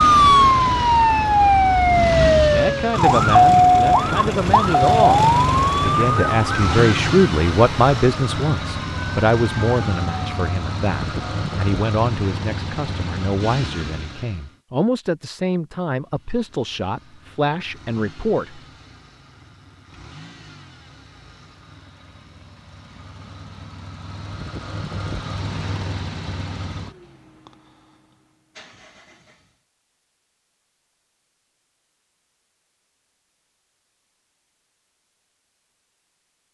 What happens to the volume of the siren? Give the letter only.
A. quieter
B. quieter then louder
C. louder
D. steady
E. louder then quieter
A.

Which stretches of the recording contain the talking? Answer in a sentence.
You can hear the talking from 2.5 to 18.6 s.